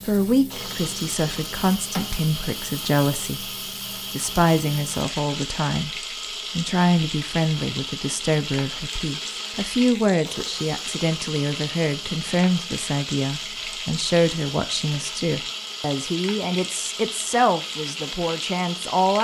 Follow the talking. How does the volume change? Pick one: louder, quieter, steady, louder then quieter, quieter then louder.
steady.